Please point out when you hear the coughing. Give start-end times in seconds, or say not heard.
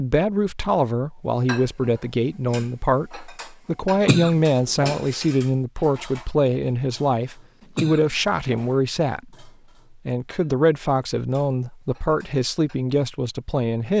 4.0-5.0, 7.8-8.8.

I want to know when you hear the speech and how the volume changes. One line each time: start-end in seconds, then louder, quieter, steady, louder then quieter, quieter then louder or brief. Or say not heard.
0.0-13.9 steady.